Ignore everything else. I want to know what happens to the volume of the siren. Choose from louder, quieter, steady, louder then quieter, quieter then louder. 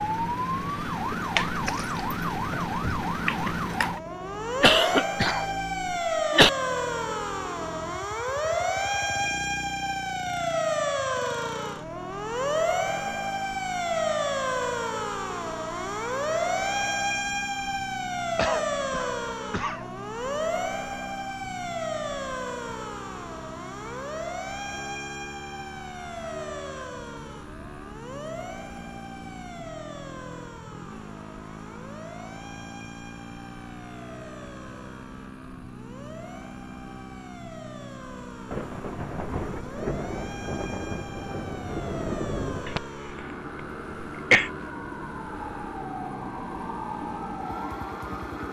quieter then louder.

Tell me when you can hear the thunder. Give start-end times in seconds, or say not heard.
38.5-42.8.